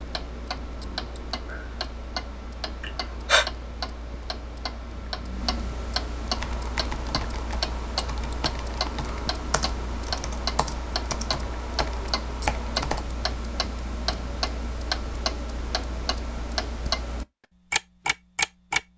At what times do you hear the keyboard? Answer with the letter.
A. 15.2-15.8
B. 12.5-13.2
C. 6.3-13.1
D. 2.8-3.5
C.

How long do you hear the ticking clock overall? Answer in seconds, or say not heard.
19 s.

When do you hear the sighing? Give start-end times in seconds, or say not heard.
2.8-3.5.